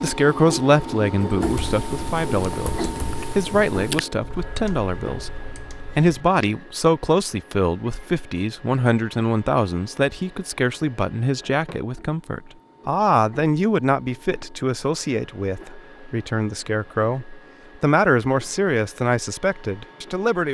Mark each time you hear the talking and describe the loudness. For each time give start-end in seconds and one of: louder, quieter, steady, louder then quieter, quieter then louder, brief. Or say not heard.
0.0-20.4 steady.